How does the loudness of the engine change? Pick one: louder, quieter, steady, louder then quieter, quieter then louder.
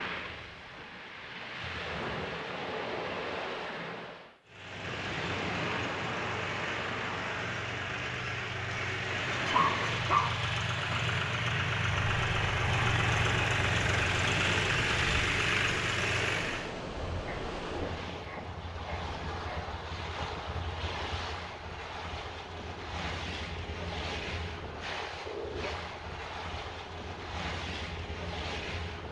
louder.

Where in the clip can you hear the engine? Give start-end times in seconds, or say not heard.
4.5-16.8.